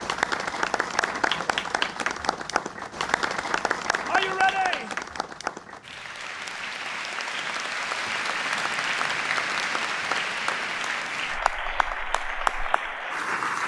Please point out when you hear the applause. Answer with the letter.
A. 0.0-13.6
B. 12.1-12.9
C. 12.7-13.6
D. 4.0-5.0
A.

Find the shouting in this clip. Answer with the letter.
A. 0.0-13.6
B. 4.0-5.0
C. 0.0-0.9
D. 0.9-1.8
B.